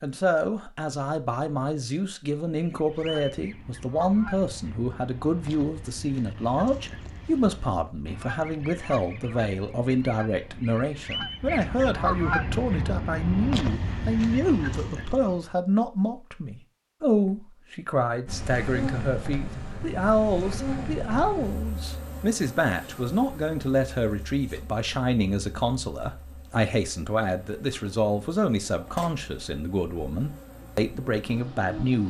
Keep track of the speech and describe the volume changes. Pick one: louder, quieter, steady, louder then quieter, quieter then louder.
steady.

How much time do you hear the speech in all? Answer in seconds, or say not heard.
32 s.